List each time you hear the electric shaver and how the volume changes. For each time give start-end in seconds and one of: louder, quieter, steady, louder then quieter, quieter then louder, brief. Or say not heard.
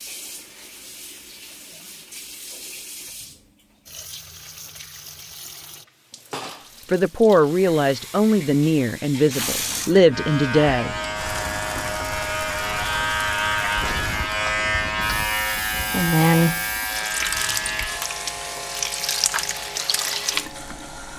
10.1-21.1 louder then quieter.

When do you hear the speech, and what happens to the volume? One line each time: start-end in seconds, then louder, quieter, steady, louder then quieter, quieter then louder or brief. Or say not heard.
6.9-10.9 quieter then louder.